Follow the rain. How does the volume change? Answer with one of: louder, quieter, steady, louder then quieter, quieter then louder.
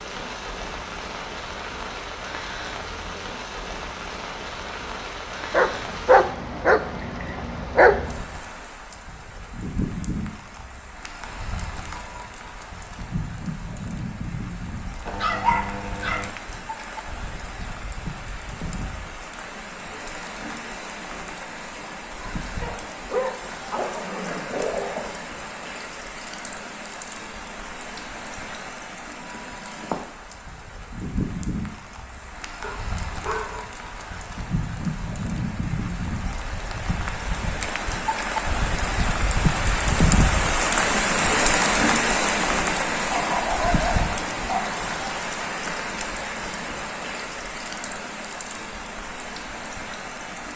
louder.